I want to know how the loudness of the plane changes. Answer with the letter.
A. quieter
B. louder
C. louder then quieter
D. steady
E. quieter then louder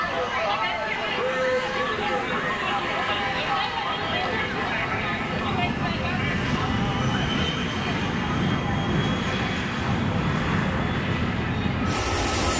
B.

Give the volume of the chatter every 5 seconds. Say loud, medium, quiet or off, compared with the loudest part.
loud, medium, medium.